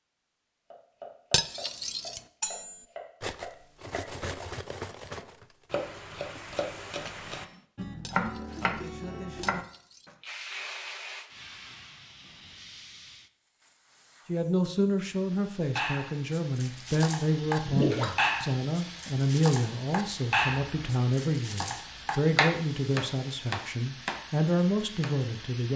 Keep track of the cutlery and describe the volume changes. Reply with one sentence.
The loudness of the cutlery goes down.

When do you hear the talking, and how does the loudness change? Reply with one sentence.
The talking can be heard from 14.2 to 25.7 s, at a steady volume.